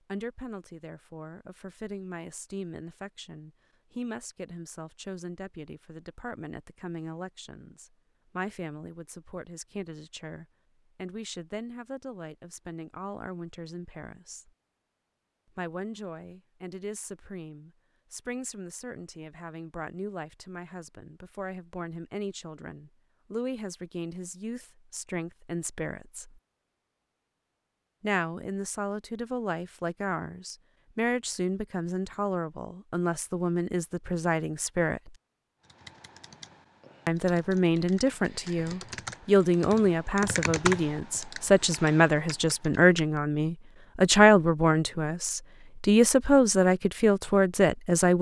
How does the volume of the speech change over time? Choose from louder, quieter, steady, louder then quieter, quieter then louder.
louder.